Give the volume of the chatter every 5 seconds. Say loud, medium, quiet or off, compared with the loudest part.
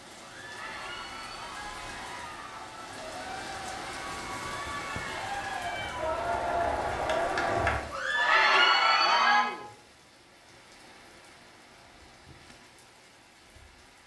quiet, loud, off.